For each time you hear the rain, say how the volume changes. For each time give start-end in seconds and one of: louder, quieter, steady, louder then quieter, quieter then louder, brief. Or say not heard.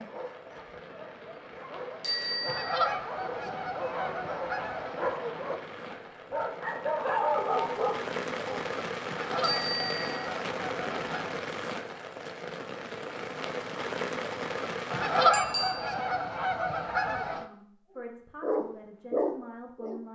0.0-15.3 louder.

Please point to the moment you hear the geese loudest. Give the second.
15 s.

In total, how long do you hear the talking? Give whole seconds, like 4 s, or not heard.
3 s.